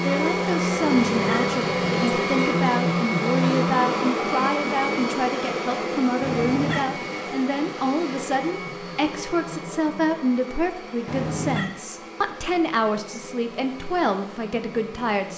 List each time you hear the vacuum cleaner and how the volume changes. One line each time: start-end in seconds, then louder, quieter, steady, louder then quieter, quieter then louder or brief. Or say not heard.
0.0-15.3 quieter.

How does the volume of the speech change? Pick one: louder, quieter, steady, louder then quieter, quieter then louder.
steady.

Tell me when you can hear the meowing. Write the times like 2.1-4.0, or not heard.
0.8-2.2, 6.2-6.9, 11.1-11.7.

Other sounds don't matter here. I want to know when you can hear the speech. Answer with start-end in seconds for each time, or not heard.
0.0-15.3.